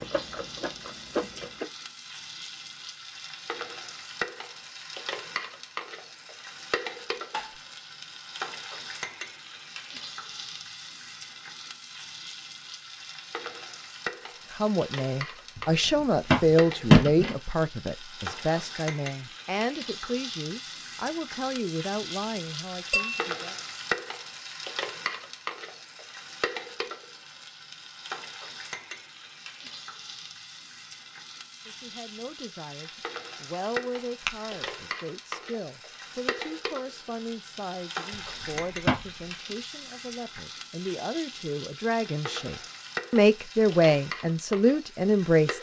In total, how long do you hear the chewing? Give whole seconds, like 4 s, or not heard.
2 s.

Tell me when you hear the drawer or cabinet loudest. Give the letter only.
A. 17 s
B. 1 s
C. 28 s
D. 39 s
A.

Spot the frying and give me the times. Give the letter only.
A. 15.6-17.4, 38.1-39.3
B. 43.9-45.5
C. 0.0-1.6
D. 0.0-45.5
D.